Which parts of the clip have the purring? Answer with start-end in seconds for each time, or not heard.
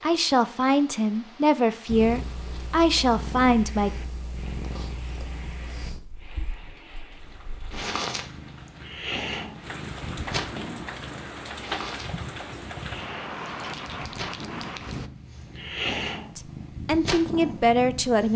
1.9-18.3.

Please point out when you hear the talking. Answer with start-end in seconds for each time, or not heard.
0.0-3.9, 16.4-18.3.